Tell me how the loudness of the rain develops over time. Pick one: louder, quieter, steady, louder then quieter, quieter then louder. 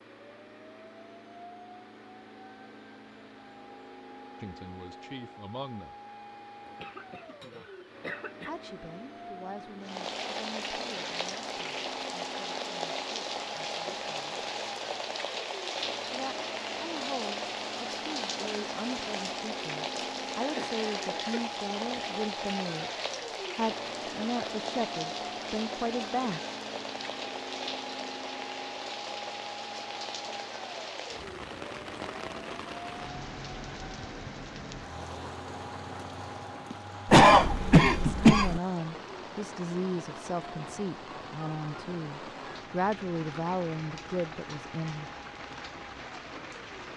quieter.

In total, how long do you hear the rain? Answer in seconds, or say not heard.
37 s.